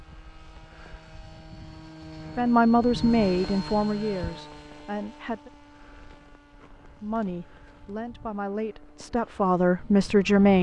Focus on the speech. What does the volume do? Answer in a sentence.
The loudness of the speech goes down, then up.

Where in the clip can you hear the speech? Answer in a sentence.
You can hear the speech from 2.4 to 5.5 s and from 7.0 to 10.5 s.